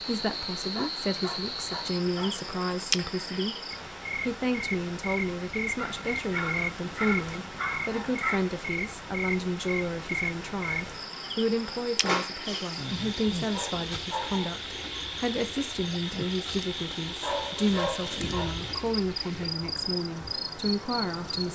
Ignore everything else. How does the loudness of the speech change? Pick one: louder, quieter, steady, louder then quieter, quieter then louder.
steady.